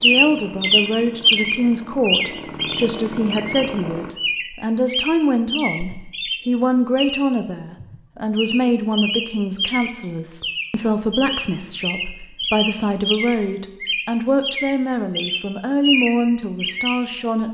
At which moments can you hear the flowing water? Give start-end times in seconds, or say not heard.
not heard.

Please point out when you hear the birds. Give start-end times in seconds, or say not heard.
0.0-17.1.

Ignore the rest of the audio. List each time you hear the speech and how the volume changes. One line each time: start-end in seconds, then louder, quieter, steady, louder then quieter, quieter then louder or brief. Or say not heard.
0.0-17.4 steady.